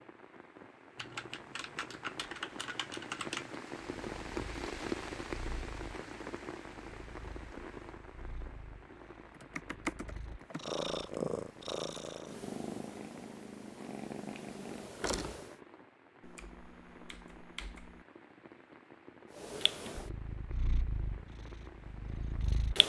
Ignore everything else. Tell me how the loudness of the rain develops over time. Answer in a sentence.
The loudness of the rain goes down.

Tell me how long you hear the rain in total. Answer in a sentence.
You can hear the rain for 23 seconds altogether.